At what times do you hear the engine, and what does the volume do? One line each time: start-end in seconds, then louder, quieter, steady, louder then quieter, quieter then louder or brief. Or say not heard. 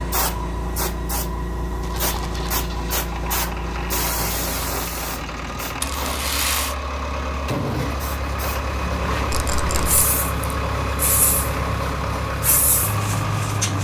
0.0-13.7 louder.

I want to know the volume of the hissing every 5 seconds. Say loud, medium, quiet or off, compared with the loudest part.
loud, medium, loud.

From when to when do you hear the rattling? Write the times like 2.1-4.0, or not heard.
1.8-2.5, 5.8-6.8, 9.3-10.0.